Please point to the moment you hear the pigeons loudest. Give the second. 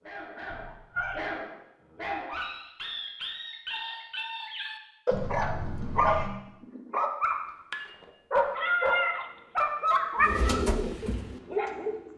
11 s.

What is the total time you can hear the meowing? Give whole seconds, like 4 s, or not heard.
3 s.